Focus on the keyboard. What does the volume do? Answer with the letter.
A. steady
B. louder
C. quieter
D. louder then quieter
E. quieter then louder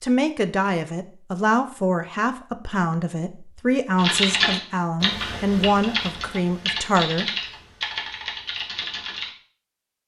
C.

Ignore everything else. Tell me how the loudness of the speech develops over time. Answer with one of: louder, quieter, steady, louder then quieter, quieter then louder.
steady.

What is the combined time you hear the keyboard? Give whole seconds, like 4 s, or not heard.
5 s.